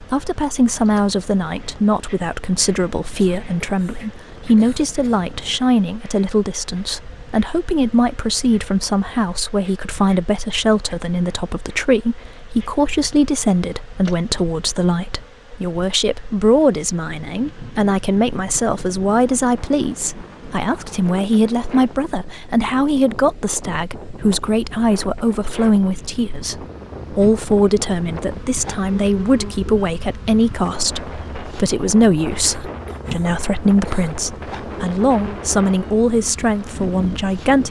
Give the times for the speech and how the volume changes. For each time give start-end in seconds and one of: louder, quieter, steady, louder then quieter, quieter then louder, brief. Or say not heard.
0.0-37.6 steady.